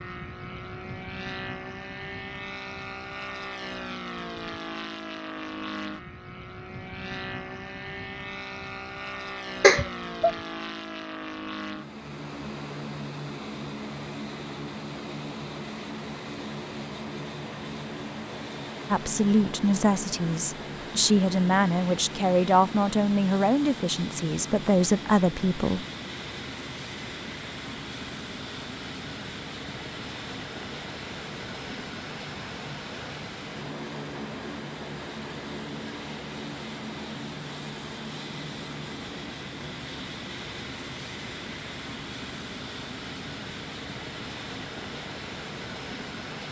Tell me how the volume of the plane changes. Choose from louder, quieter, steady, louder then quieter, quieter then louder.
steady.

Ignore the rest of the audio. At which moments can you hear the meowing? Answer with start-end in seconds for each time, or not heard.
9.6-10.3.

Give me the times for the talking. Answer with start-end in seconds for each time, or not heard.
18.9-25.9.